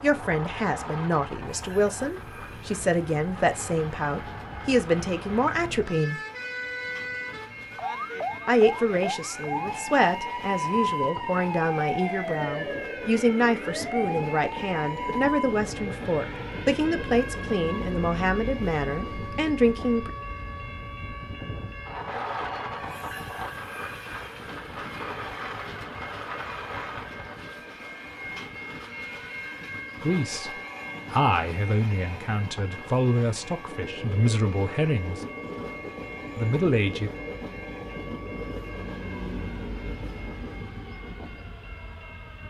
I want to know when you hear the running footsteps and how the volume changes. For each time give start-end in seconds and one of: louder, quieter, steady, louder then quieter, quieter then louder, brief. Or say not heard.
not heard.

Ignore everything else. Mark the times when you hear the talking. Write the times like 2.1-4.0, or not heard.
0.0-6.2, 8.4-20.1, 30.0-35.2, 36.4-37.1.